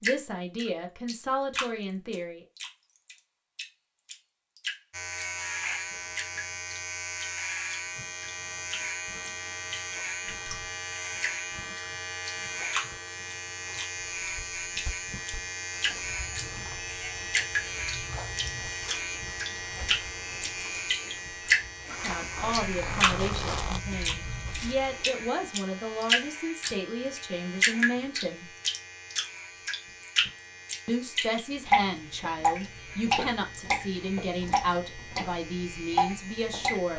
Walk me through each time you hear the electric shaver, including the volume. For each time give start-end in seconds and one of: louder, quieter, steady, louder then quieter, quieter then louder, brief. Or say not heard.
4.9-36.9 quieter.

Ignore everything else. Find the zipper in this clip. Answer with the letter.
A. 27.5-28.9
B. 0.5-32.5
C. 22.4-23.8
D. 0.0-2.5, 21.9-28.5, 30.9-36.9
C.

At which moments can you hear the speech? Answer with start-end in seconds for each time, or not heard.
0.0-2.5, 21.9-28.5, 30.9-36.9.